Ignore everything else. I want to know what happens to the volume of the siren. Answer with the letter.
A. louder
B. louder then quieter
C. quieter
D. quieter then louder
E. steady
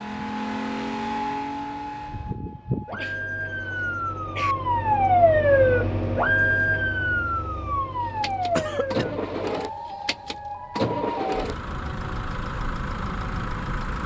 B.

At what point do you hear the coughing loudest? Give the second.
9 s.